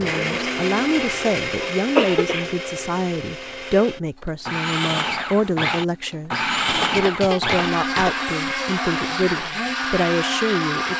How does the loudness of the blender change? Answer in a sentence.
The volume of the blender goes down, then up.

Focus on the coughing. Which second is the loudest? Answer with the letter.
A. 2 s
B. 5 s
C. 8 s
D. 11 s
A.